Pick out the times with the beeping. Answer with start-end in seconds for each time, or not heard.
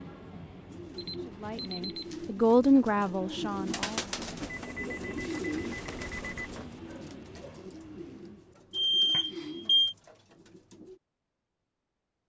0.9-2.0, 4.5-6.5, 8.7-9.9.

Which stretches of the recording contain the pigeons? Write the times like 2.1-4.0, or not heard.
0.7-11.0.